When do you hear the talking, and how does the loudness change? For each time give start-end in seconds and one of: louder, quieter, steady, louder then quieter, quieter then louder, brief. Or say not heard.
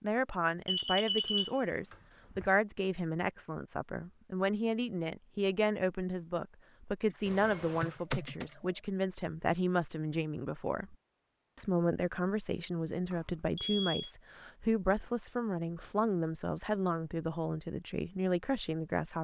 0.0-10.9 steady
11.6-19.2 steady.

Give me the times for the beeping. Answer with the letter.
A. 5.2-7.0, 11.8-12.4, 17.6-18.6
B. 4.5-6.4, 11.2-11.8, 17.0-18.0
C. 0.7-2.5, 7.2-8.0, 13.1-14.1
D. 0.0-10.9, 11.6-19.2
C.